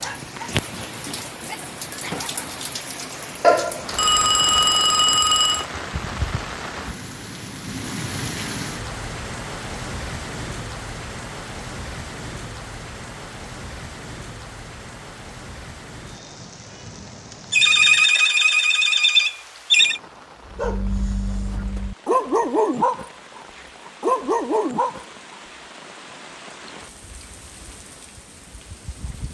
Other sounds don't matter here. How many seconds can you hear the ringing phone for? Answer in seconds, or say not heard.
5 s.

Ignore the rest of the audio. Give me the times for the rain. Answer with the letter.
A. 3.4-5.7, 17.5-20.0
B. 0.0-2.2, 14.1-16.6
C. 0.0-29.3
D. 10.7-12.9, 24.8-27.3
C.